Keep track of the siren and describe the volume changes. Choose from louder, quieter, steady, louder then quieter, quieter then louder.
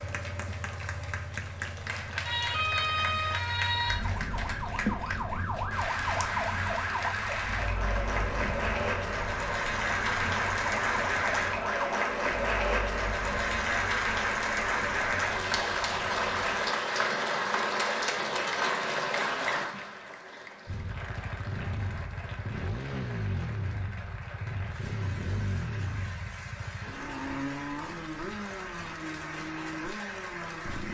quieter.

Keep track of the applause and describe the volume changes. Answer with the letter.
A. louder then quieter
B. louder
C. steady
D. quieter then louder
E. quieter
A.